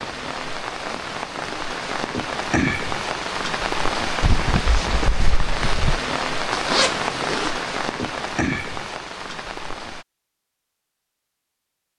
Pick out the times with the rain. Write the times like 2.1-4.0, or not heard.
0.0-10.1.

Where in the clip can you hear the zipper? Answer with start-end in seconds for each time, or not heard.
6.5-7.5.